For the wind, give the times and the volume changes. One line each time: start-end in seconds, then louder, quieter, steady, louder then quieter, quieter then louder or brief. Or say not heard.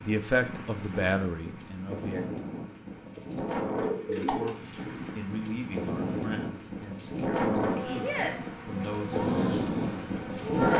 0.0-10.7 louder.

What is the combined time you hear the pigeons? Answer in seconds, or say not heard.
2 s.